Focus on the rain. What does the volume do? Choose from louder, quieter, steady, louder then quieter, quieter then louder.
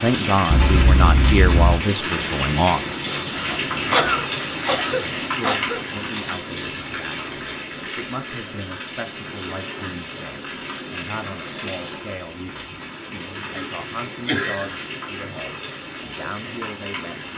quieter.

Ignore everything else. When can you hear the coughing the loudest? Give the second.
4 s.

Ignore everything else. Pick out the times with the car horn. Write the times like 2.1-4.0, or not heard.
0.5-1.8.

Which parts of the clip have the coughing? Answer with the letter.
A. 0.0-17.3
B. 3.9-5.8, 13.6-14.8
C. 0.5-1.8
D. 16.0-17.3
B.